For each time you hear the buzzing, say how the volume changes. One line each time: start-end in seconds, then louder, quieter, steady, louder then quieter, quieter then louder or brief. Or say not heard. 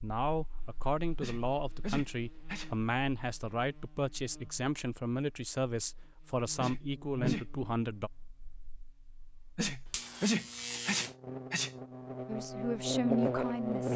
0.2-13.9 louder.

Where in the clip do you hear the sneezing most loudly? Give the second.
10 s.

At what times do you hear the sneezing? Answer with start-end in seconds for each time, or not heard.
1.2-2.8, 6.5-7.5, 9.6-11.7.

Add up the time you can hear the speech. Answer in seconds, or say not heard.
10 s.